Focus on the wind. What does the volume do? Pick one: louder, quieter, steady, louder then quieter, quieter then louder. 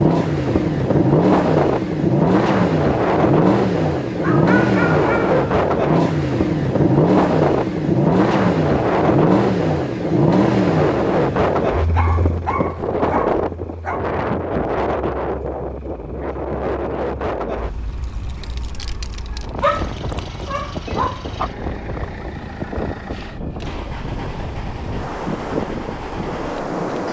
quieter.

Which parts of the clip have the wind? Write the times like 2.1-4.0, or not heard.
0.1-27.0.